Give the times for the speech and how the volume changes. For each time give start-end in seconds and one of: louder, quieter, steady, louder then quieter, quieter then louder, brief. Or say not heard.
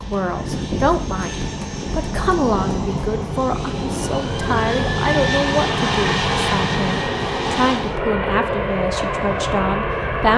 0.0-10.3 steady.